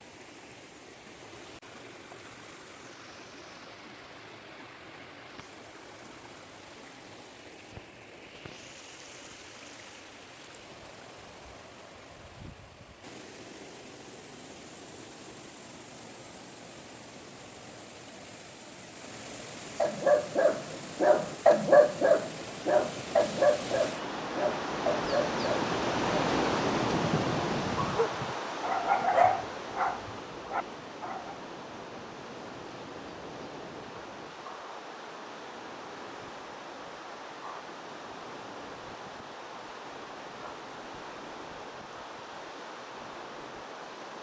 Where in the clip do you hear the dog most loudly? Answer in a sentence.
The loudest moment of the dog is at 22 seconds.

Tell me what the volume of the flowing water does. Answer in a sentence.
The loudness of the flowing water goes up, then down.